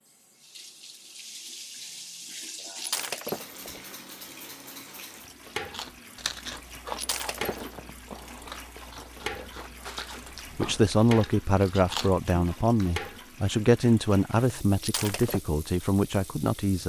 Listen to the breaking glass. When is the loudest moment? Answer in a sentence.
The loudest moment of the breaking glass is at 3 seconds.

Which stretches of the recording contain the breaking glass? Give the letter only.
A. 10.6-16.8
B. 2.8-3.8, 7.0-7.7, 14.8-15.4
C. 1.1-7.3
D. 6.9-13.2
B.